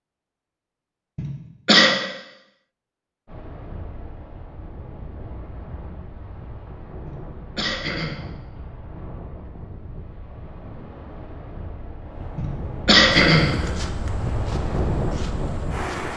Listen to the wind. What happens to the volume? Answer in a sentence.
The volume of the wind goes up.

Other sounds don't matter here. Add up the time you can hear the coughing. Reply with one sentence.
You can hear the coughing for 3 seconds altogether.